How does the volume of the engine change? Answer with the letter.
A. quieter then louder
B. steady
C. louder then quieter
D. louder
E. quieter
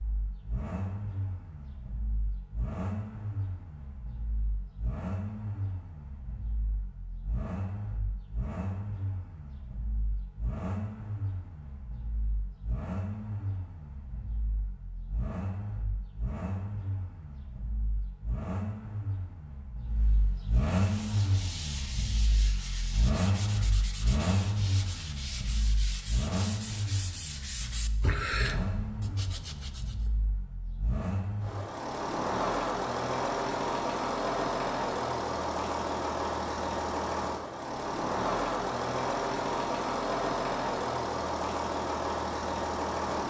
D.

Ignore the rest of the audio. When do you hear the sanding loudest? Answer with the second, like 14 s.
28 s.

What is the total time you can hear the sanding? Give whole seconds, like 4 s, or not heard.
9 s.